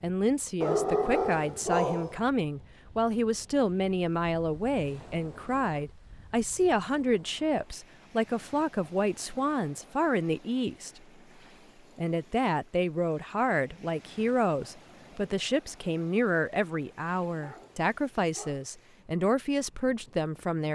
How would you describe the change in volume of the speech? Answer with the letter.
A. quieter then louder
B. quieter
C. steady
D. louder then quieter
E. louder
C.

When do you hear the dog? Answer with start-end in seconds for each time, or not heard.
0.6-2.2, 17.3-18.7.